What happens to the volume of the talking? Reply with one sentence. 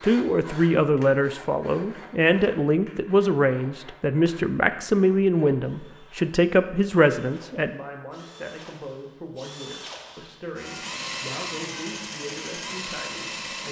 The volume of the talking goes down.